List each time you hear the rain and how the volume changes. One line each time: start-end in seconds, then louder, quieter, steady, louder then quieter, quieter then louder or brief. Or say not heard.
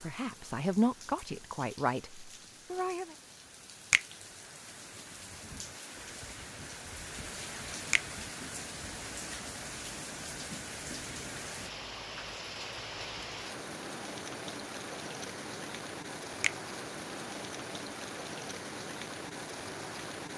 0.0-20.3 louder.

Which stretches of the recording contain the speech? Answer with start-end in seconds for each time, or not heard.
0.0-3.1.